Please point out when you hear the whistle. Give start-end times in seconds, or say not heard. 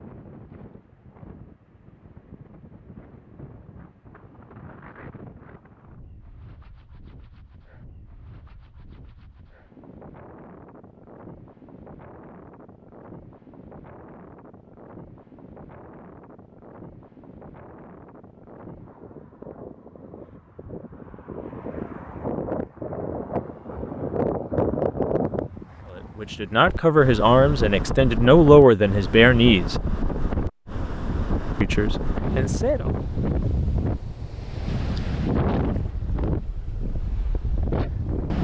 not heard.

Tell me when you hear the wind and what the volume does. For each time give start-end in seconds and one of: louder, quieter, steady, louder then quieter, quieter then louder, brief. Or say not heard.
0.0-38.3 louder.